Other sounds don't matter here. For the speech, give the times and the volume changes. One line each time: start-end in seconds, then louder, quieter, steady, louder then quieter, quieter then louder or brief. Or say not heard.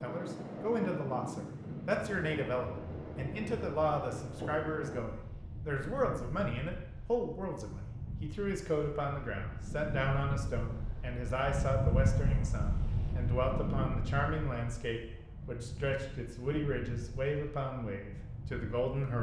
0.0-19.1 steady.